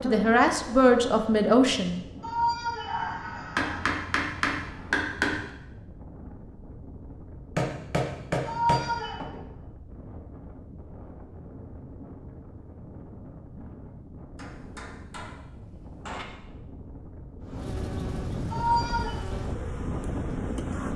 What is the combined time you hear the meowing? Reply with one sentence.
The meowing can be heard for 3 seconds in total.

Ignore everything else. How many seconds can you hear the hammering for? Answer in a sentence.
You can hear the hammering for 6 seconds altogether.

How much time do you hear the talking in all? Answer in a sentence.
You can hear the talking for 2 seconds altogether.